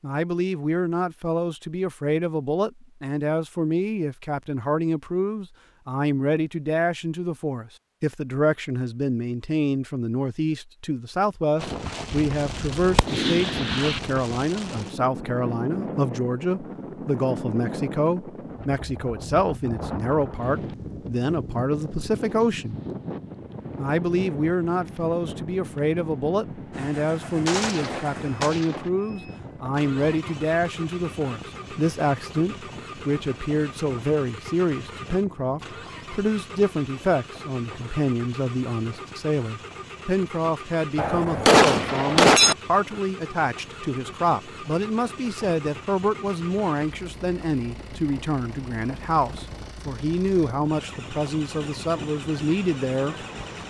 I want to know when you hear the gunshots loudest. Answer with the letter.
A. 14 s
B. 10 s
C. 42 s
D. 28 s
C.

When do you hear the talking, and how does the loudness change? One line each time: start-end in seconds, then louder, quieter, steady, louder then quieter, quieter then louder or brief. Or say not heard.
0.0-22.8 steady
23.8-53.1 steady.